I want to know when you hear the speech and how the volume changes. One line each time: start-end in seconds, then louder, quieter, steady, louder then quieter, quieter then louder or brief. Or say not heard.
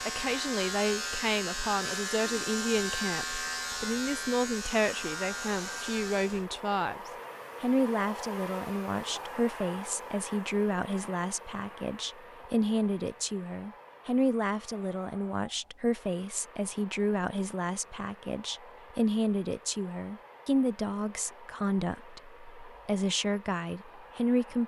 0.1-24.6 steady.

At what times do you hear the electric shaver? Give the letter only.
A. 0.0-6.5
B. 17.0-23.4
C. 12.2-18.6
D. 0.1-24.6
A.